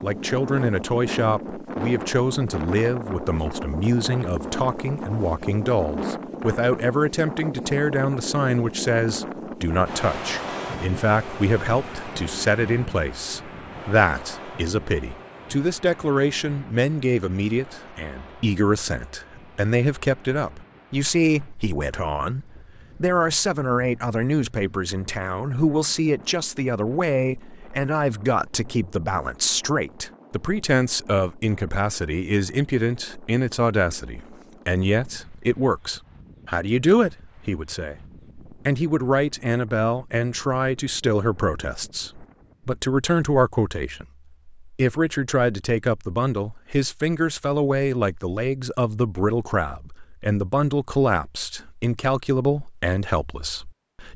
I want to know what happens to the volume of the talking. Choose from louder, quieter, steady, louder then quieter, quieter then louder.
steady.